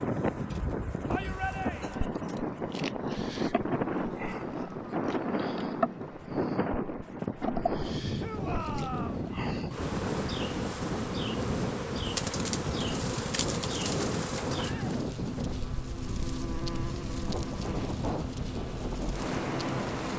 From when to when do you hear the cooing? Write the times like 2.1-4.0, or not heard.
12.2-14.8.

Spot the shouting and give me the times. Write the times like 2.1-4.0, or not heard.
1.1-2.1, 8.2-9.2, 14.6-15.0.